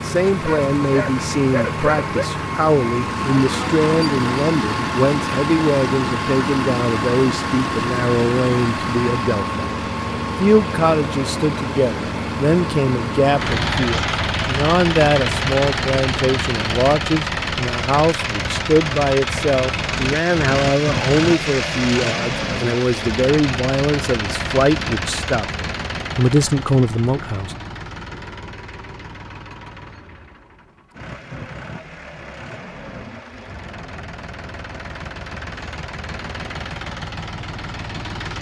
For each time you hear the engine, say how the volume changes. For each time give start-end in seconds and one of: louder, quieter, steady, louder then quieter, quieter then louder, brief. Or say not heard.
0.0-38.3 quieter.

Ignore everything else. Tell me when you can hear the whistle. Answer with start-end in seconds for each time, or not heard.
not heard.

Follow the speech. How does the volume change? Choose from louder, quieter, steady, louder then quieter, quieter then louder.
steady.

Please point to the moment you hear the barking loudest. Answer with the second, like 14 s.
2 s.